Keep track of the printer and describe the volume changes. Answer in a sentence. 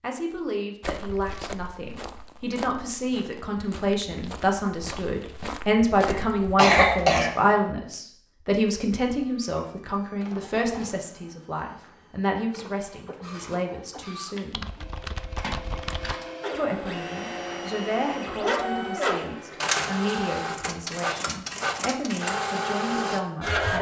The volume of the printer goes up.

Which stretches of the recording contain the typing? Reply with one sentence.
The typing can be heard from 14.5 to 16.1 s.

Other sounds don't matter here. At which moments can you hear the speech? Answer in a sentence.
The speech can be heard from 0.0 to 14.7 s and from 16.6 to 23.7 s.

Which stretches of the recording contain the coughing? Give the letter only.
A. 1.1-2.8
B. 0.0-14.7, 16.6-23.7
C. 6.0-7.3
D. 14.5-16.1
C.